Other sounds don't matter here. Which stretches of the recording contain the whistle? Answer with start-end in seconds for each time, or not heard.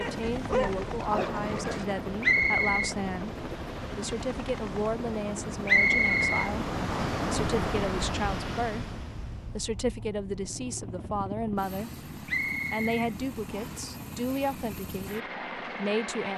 2.2-3.0, 5.7-7.2, 12.2-13.8.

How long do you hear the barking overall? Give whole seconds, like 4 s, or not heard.
2 s.